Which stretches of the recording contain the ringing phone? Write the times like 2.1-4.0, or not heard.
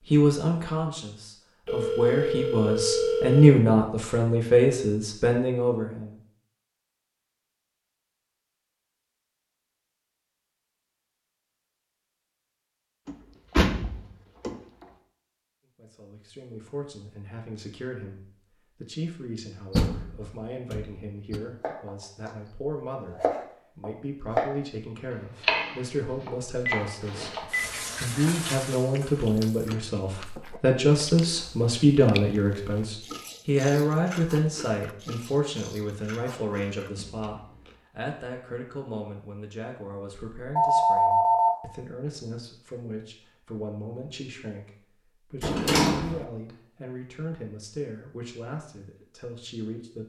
1.6-3.6, 26.6-27.7, 40.5-41.5.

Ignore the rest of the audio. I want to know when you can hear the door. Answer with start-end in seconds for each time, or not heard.
13.1-14.8, 19.7-21.4, 45.4-46.2.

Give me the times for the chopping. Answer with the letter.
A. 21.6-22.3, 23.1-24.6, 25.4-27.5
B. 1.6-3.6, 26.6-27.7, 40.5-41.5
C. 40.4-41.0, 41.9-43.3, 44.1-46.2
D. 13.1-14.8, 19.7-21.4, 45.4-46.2
A.